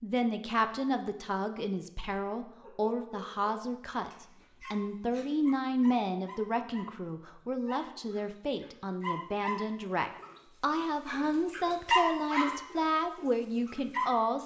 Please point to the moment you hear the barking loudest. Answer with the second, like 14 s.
12 s.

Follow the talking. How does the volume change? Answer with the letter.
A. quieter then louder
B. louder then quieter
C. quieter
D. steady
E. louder
D.